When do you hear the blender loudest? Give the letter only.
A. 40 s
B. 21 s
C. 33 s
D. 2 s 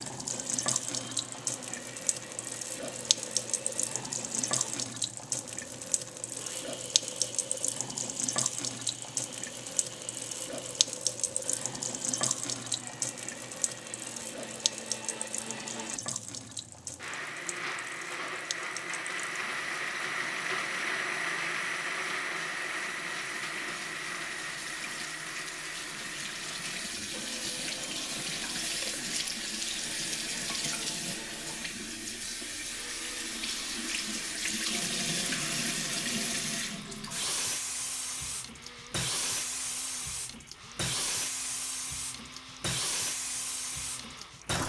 B.